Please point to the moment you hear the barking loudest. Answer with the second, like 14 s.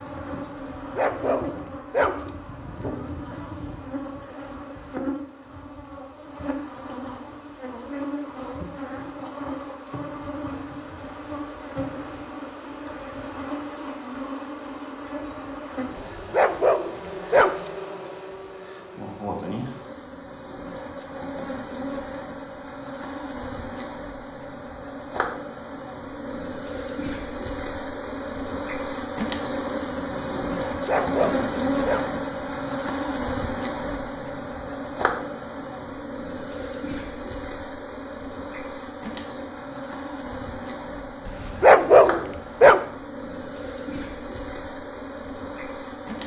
42 s.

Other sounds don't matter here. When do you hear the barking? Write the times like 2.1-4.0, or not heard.
0.8-2.3, 15.9-17.7, 30.7-32.0, 41.2-42.8.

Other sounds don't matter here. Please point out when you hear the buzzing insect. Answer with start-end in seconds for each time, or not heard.
0.0-46.2.